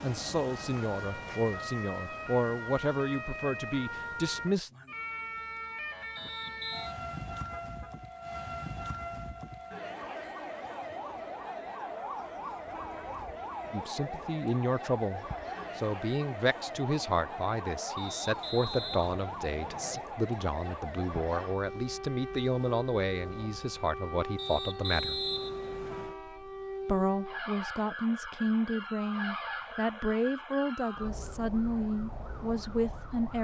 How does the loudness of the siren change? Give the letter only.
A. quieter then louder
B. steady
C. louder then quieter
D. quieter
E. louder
B.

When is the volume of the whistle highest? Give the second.
25 s.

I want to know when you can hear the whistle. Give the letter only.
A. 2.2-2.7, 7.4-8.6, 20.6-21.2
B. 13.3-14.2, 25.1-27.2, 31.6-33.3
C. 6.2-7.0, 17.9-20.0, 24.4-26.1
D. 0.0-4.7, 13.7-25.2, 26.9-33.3
C.